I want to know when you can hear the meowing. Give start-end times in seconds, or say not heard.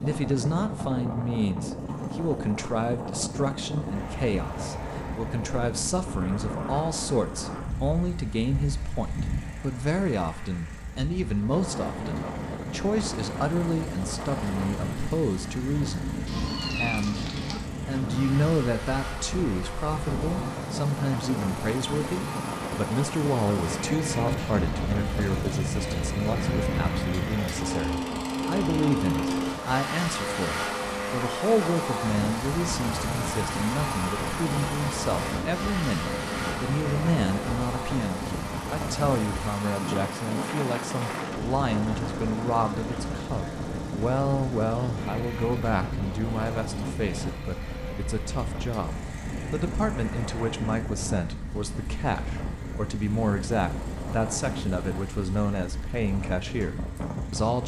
16.2-17.6.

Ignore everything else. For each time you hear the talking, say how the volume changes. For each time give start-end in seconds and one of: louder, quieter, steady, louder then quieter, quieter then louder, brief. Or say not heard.
0.0-57.6 steady.